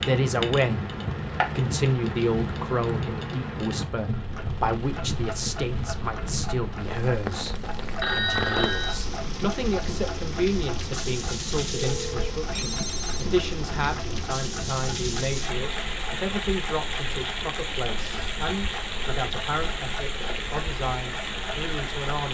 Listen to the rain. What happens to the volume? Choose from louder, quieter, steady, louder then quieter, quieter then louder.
steady.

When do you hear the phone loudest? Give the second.
8 s.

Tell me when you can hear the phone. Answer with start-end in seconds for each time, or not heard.
8.0-9.1, 11.9-13.2.